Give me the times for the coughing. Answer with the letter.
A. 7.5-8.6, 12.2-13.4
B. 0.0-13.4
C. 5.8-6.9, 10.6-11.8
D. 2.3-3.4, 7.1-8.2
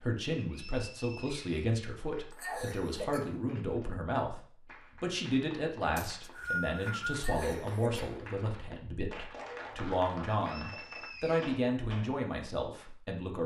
D.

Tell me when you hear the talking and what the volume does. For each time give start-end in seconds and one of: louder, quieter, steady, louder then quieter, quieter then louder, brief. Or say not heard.
0.0-13.4 steady.